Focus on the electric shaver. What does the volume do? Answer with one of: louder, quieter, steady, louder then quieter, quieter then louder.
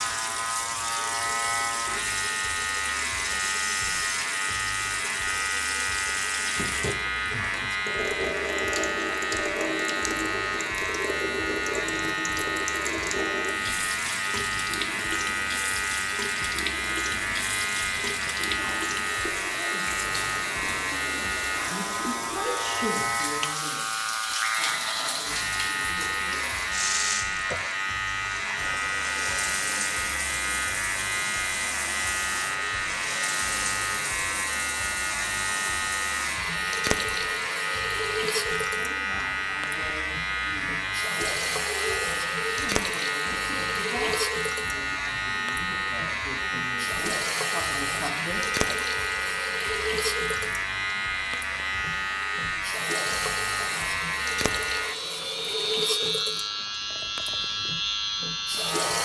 steady.